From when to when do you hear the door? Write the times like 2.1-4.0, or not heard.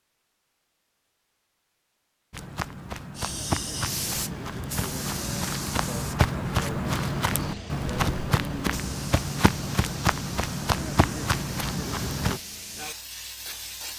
not heard.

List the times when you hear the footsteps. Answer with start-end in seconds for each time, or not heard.
2.3-12.4.